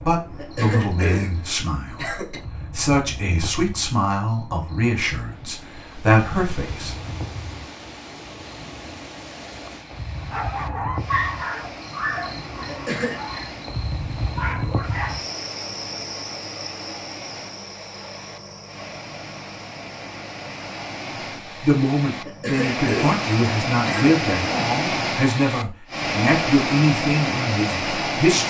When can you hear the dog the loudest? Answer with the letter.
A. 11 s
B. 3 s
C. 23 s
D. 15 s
A.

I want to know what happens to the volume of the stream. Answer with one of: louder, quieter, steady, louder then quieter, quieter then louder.
louder.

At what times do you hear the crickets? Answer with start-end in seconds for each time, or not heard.
0.0-22.6.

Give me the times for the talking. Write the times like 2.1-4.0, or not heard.
0.0-7.0, 21.6-28.4.